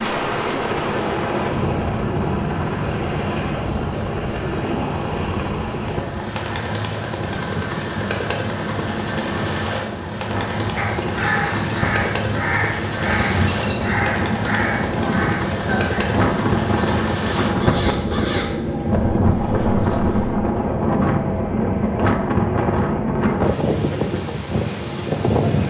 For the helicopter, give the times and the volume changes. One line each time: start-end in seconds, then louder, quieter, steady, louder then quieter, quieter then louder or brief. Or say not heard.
0.0-23.4 steady.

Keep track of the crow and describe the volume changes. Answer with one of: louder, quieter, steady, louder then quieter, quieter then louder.
quieter.